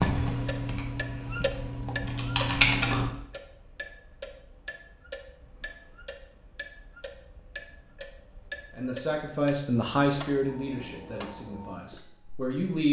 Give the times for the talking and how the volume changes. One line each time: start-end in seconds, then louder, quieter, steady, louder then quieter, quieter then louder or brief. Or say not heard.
8.8-12.8 quieter.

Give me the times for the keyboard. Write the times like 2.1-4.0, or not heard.
0.0-3.1.